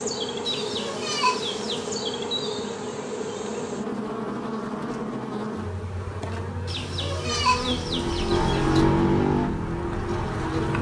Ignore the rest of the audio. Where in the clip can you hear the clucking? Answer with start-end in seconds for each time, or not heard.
0.5-2.0, 6.7-8.8.